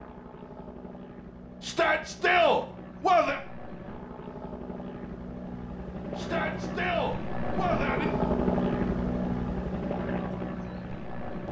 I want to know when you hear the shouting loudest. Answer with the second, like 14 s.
2 s.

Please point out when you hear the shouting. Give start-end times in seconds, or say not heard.
1.6-3.4, 6.2-8.1.